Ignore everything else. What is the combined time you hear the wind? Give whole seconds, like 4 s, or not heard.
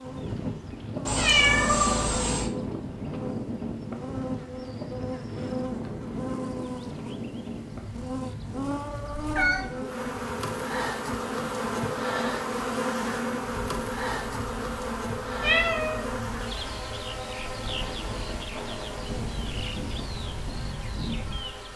22 s.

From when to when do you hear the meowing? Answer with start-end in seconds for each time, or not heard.
1.1-2.5, 9.2-9.7, 15.4-16.1.